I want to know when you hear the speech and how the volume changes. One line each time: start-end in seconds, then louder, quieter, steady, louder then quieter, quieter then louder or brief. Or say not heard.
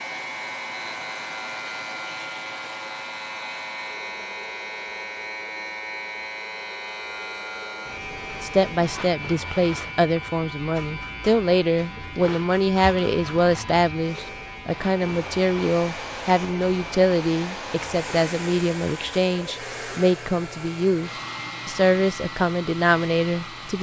8.4-23.7 steady.